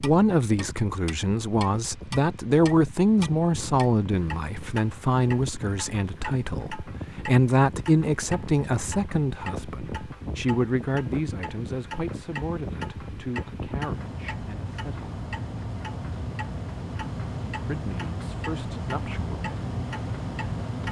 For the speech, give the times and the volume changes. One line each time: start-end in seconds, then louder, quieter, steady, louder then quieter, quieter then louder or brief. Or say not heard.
0.0-15.1 quieter
17.6-19.4 brief.